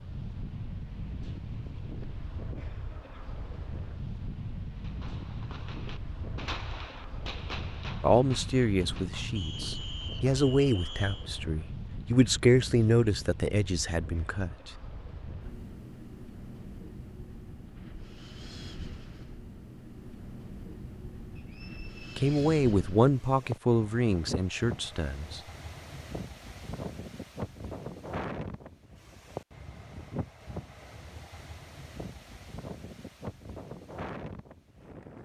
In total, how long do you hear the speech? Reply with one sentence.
You can hear the speech for 10 seconds altogether.